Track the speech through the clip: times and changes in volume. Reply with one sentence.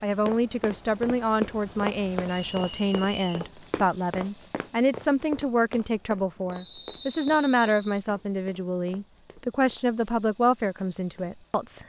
The speech can be heard from 0.0 to 11.8 s, at a steady volume.